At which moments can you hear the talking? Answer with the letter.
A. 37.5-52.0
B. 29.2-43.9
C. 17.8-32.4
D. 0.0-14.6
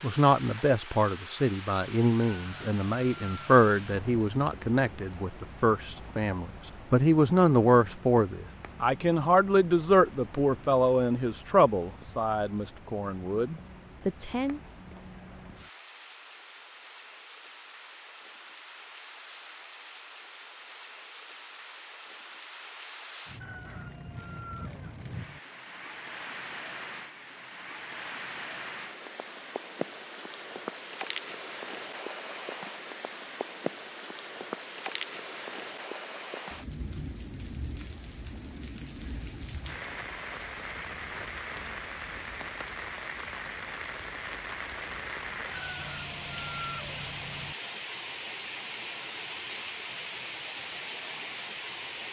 D.